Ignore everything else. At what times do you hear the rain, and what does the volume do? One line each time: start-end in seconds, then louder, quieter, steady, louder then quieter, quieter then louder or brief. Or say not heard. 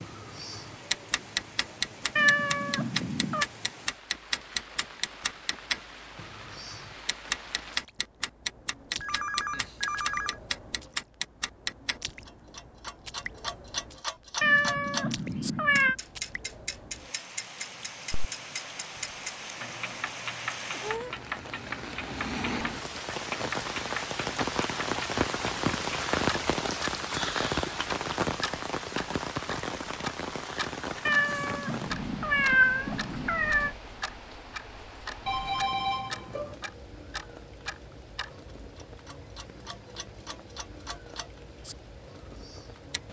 0.0-43.0 louder then quieter.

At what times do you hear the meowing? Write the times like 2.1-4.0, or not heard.
2.1-3.5, 14.4-15.9, 31.1-33.7.